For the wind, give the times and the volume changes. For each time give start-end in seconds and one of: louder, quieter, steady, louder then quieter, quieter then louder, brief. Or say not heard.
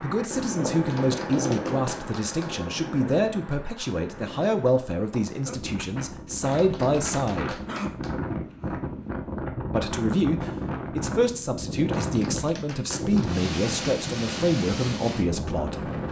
0.0-16.0 quieter then louder.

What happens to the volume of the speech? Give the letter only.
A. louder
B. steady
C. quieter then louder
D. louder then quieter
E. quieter
B.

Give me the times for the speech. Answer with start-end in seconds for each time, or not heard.
0.0-7.7, 9.7-15.8.